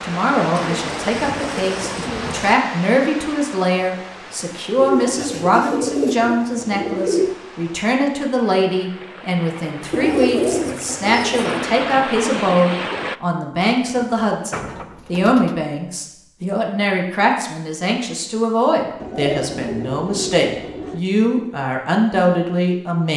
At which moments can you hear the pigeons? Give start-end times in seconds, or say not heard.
0.6-2.5, 4.8-7.4, 9.9-11.7, 13.8-15.6, 18.9-21.0.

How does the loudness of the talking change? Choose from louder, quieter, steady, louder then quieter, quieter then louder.
steady.